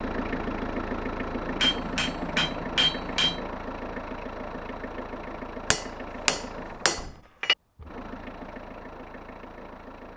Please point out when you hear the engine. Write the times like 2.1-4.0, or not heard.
0.0-10.1.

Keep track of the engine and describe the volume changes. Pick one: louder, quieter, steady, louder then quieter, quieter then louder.
quieter.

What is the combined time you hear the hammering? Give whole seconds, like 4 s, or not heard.
4 s.